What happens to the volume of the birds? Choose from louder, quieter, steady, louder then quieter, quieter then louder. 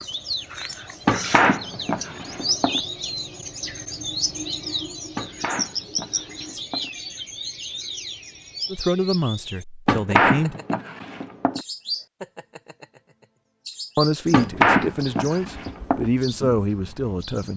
quieter.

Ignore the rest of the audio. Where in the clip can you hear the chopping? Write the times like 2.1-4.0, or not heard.
1.1-2.8, 5.2-6.9, 9.8-11.7, 14.3-16.1.